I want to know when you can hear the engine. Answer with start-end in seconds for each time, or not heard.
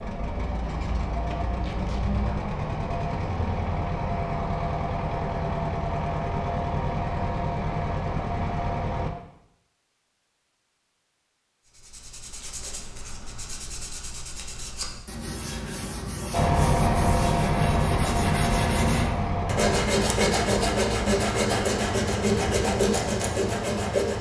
0.0-9.1, 16.3-24.1.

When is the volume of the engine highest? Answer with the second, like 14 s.
17 s.